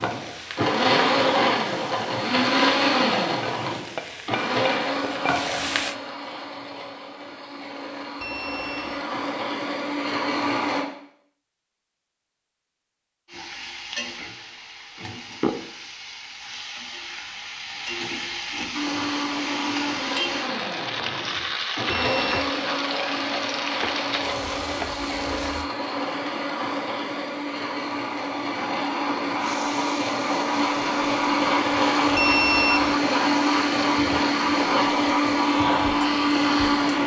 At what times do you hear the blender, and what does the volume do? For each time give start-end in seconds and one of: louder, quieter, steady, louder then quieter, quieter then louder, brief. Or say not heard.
0.0-10.8 quieter then louder
18.7-37.0 louder.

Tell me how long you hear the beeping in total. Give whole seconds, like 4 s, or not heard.
2 s.